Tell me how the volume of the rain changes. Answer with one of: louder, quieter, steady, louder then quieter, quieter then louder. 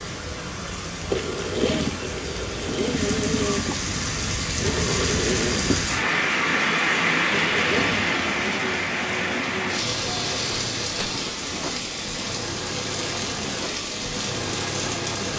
louder then quieter.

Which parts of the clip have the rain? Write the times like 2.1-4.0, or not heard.
0.0-15.3.